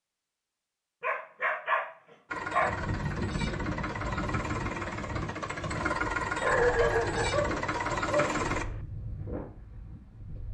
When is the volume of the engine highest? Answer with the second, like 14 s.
6 s.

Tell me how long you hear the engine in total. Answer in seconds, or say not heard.
6 s.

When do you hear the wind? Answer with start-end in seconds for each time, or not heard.
2.6-10.4.